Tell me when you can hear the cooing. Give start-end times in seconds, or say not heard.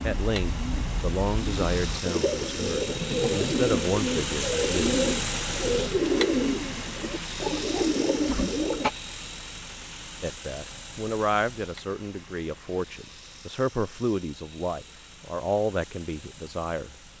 0.0-8.9.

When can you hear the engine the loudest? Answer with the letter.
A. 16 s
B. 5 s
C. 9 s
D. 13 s
B.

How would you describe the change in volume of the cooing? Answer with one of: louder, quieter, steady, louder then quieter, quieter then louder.
louder.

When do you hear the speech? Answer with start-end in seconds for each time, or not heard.
0.0-5.0, 10.2-16.9.